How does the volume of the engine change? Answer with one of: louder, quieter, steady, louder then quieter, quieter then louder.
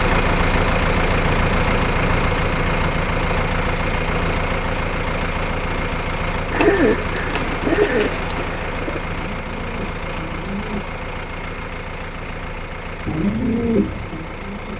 quieter.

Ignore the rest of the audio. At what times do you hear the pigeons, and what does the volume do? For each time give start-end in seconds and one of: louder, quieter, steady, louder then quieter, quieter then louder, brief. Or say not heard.
6.5-10.8 louder then quieter
13.1-14.7 brief.